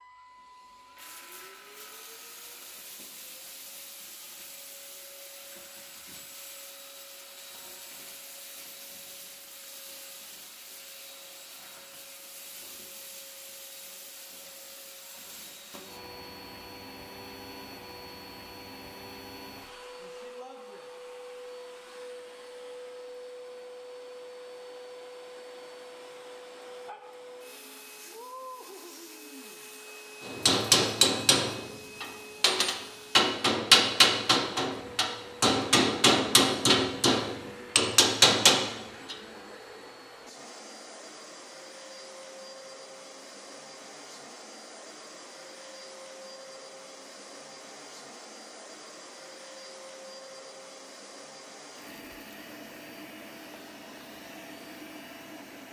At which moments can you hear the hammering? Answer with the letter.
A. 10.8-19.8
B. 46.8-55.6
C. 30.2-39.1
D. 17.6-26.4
C.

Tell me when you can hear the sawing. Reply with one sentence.
The sawing can't be heard in this clip.